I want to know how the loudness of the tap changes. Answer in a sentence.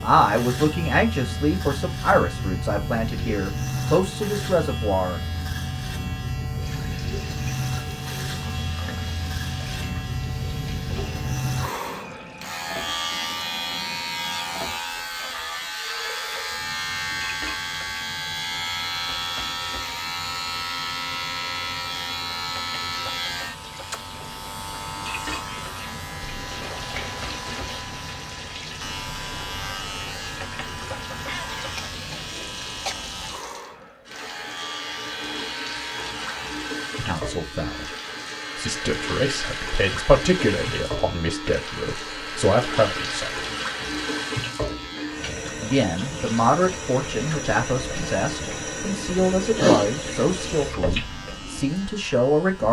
The loudness of the tap goes up.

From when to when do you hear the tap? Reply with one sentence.
You can hear the tap from 6.5 to 52.6 s.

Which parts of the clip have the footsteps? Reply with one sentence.
You can't hear the footsteps here.